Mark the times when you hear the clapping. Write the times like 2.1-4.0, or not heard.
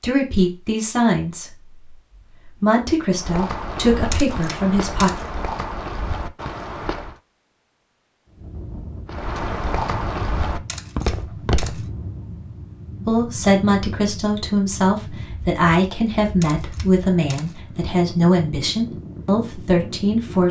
not heard.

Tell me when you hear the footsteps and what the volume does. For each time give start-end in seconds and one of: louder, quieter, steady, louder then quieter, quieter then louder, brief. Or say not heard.
3.1-7.2 steady
9.1-11.8 brief.